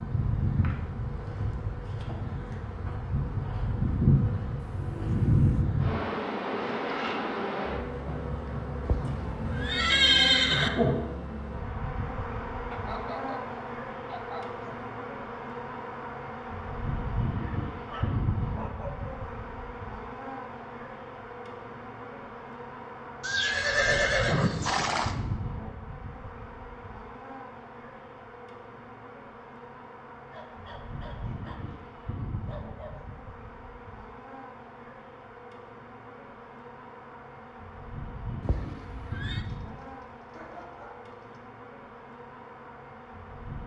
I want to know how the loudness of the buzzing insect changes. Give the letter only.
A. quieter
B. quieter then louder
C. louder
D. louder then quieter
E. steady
A.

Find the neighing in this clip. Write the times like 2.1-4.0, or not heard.
8.8-10.7, 23.2-25.1, 38.4-39.5.